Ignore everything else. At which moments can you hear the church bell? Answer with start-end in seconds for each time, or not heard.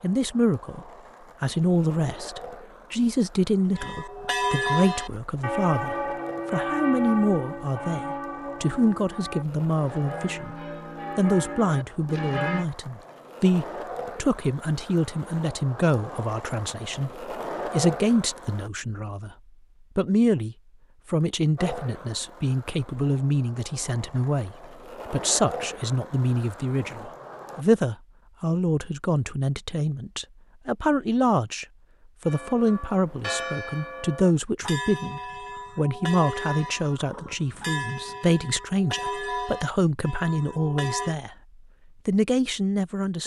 3.8-12.7, 32.2-41.1.